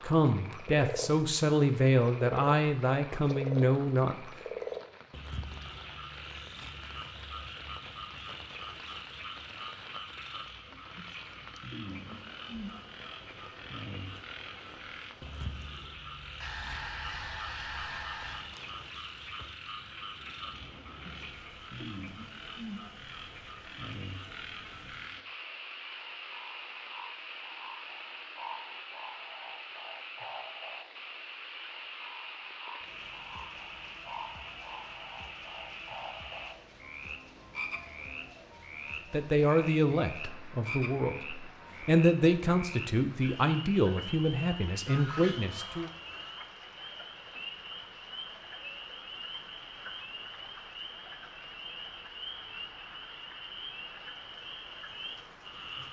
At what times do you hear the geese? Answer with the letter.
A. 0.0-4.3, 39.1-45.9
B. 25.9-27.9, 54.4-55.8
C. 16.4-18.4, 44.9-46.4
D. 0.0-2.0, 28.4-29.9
C.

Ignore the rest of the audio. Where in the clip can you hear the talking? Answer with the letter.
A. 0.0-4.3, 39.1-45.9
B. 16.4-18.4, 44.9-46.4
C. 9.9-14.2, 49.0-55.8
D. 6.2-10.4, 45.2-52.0
A.